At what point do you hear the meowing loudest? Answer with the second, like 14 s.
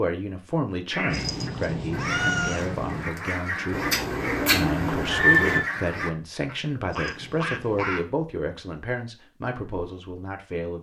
2 s.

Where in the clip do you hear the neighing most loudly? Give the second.
5 s.